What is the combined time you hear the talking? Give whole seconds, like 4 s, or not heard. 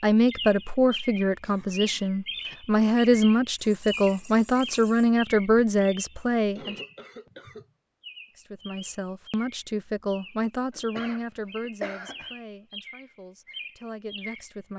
13 s.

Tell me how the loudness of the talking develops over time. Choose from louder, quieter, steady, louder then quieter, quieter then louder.
quieter.